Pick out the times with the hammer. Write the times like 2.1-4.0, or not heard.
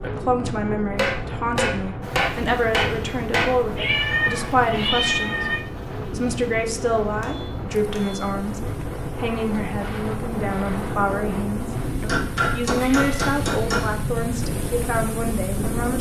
0.9-3.5, 7.2-8.3, 12.1-13.9.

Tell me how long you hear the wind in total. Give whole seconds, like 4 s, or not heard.
16 s.